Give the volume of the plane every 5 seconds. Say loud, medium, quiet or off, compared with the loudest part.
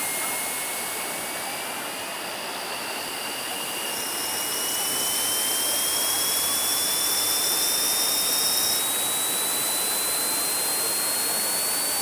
medium, loud, loud.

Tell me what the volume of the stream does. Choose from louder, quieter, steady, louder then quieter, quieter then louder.
steady.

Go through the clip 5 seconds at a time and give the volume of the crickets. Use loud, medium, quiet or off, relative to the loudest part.
medium, loud, off.